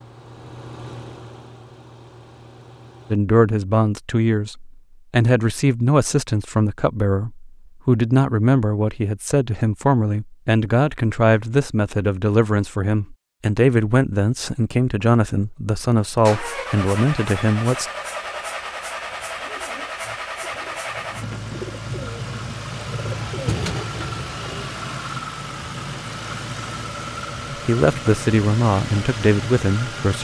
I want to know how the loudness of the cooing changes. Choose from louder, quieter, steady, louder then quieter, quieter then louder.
louder.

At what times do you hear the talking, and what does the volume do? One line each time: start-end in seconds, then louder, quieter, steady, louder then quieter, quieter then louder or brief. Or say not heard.
3.1-17.9 steady
27.6-30.1 brief.